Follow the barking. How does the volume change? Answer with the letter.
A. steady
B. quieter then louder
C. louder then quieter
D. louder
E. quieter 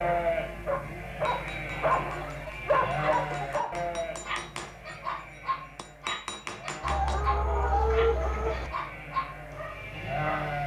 E.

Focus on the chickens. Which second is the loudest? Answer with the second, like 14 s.
8 s.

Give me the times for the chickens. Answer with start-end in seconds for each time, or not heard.
1.7-3.6, 6.8-8.7.